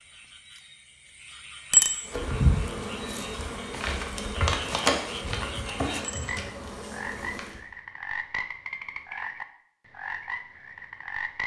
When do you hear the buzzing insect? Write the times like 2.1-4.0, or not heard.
2.0-7.7.